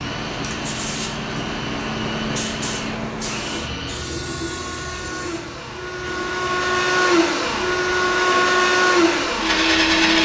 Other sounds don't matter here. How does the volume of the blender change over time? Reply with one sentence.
The volume of the blender goes up.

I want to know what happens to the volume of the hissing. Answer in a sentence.
The volume of the hissing goes down.